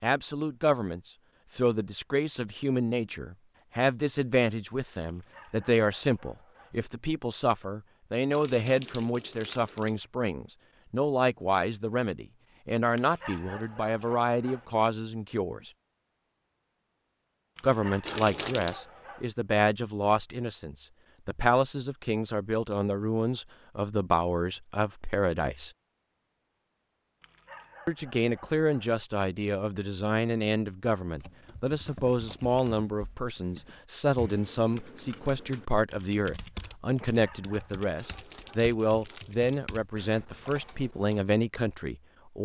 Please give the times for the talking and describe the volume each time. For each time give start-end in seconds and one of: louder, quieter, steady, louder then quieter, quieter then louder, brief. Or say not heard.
0.0-15.7 steady
17.6-25.7 steady
27.9-42.3 steady.